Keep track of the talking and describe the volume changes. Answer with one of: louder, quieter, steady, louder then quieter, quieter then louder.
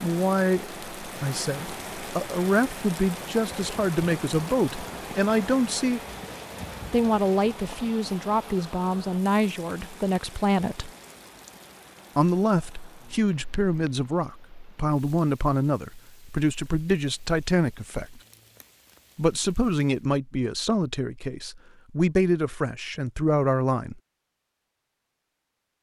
steady.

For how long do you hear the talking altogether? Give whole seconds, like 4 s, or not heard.
21 s.